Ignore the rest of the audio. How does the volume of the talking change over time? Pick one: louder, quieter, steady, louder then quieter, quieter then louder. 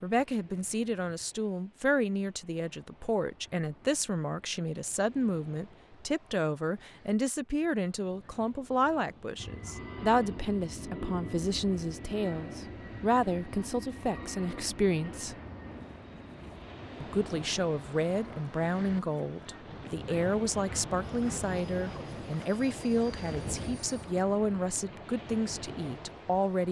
steady.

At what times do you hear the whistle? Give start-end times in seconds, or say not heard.
not heard.